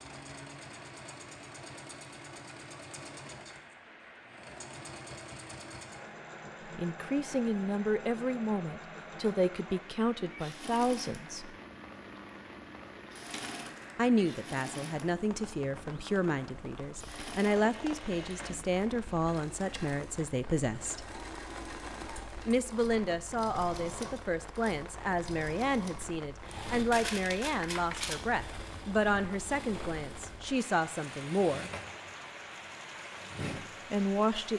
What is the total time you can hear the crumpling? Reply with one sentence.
You can hear the crumpling for 2 seconds altogether.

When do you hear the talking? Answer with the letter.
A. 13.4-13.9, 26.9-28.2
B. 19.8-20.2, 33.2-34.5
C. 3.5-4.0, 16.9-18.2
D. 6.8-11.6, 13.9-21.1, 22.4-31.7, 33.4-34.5
D.